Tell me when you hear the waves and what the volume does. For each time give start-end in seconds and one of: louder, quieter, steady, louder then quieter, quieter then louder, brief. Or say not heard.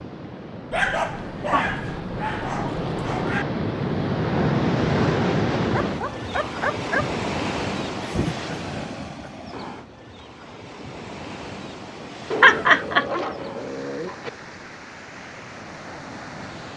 0.0-16.7 louder then quieter.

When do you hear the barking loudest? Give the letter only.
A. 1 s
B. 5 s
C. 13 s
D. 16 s
A.